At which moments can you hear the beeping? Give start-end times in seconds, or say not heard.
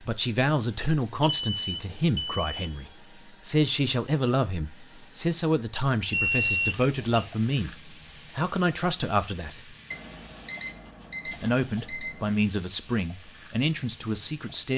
1.2-2.9, 6.1-7.3, 9.9-12.3.